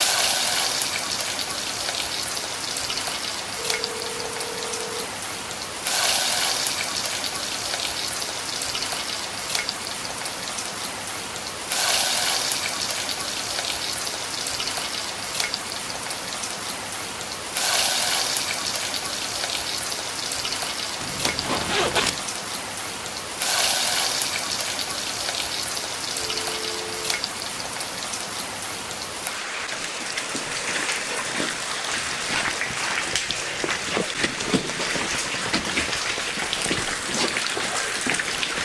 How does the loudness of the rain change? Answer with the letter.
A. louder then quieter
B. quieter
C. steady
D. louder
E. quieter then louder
C.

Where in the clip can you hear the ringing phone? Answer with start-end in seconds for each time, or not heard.
3.5-5.1, 26.1-27.2.